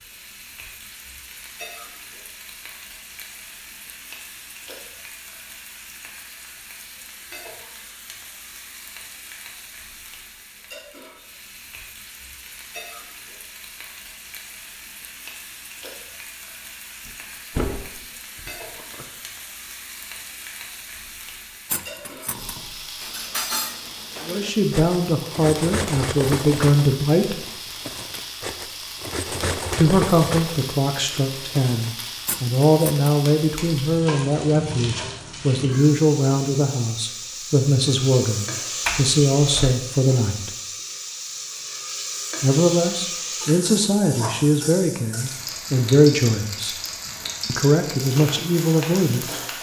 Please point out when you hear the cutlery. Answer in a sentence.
The cutlery can be heard from 21.6 to 33.1 s.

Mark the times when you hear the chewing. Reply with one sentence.
The chewing can't be heard in this clip.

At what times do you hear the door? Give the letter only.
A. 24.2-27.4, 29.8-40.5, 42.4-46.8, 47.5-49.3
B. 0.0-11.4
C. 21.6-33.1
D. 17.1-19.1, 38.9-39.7
D.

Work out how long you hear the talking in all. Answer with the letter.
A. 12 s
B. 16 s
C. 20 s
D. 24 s
C.